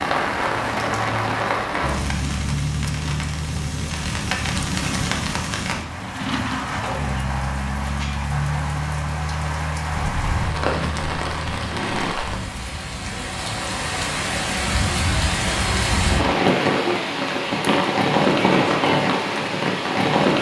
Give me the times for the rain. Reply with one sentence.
The rain can be heard from 0.0 to 20.3 s.